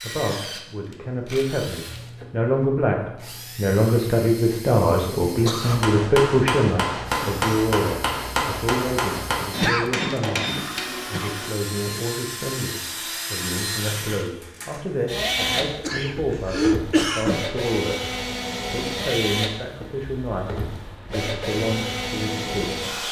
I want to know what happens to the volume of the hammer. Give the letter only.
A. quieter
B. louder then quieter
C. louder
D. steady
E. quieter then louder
D.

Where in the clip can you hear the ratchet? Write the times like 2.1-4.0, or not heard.
not heard.